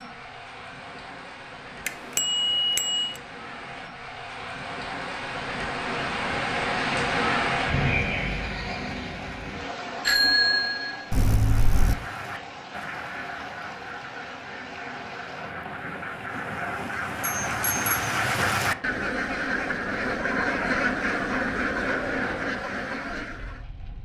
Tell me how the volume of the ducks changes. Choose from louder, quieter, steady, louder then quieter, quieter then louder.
louder.